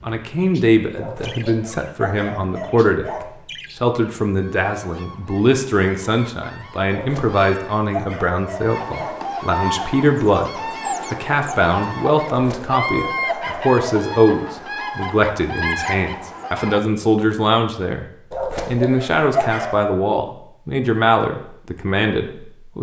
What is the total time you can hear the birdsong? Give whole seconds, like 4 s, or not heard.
17 s.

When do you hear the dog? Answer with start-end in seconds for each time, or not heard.
0.9-3.2, 6.8-9.2, 12.3-14.0, 18.3-19.8.